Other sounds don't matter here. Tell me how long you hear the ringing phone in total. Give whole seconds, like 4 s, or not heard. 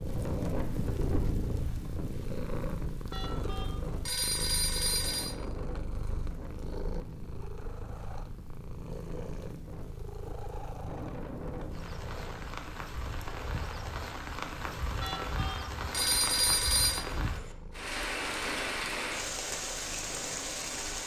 4 s.